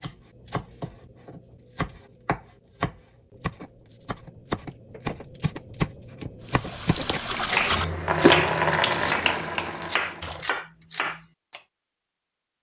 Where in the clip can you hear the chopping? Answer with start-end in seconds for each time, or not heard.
0.0-11.6.